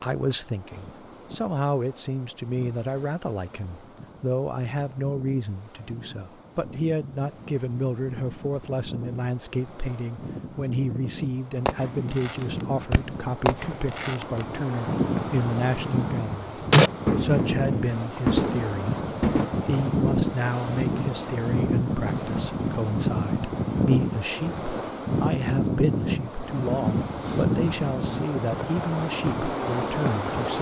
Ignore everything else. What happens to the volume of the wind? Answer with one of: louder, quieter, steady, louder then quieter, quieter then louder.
louder.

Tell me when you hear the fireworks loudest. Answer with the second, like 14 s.
17 s.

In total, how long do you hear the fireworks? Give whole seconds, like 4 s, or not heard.
8 s.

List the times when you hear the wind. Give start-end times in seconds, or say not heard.
0.0-30.5.